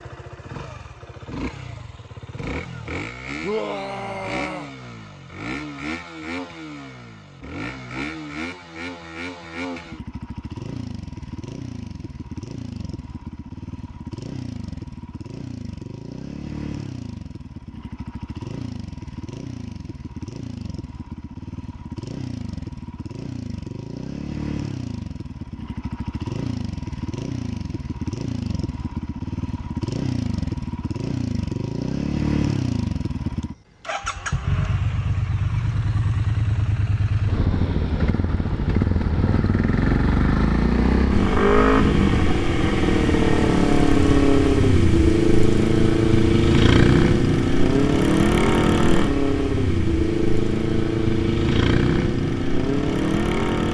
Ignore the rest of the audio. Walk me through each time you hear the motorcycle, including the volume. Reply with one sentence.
You can hear the motorcycle from 0.0 to 53.6 s, getting louder.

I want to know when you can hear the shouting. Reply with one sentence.
You can hear the shouting from 3.4 to 4.7 s.